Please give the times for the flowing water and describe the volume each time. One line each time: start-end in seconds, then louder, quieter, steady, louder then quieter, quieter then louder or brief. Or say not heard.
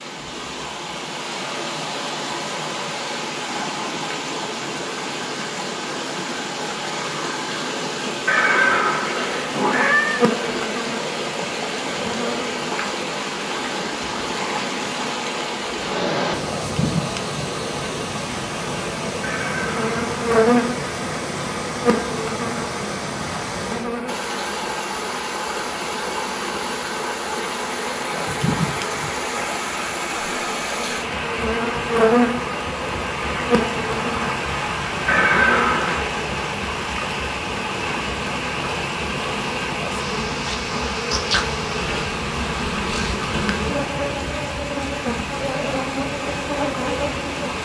0.0-47.5 steady.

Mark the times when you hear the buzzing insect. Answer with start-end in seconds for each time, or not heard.
9.2-47.5.